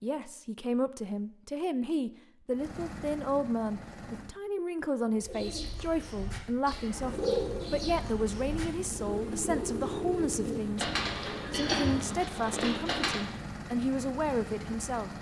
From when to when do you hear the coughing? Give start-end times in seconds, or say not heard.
11.5-12.2.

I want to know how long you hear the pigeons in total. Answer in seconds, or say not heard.
8 s.